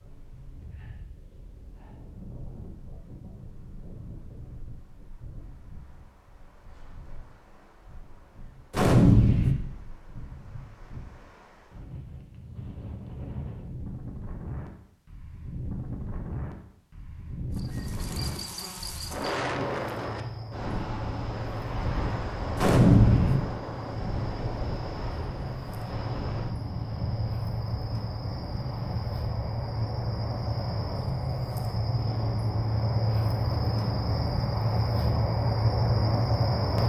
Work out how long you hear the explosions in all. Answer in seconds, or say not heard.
2 s.